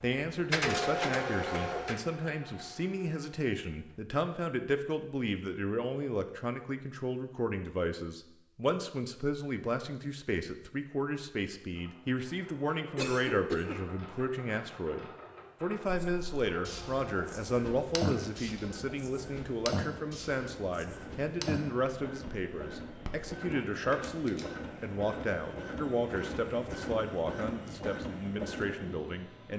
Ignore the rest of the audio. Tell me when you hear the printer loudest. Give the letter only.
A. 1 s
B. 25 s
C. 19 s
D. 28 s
A.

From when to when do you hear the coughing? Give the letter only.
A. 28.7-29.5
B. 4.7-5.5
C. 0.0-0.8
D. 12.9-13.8
D.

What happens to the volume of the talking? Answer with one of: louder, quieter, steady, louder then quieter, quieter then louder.
steady.